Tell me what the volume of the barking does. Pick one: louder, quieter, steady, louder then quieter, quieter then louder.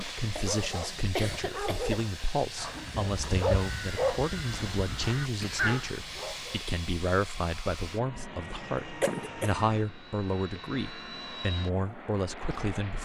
louder then quieter.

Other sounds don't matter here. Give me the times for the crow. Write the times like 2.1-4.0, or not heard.
2.5-6.3.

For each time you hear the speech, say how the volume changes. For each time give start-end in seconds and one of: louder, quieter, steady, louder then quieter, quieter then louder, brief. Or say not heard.
0.0-12.9 steady.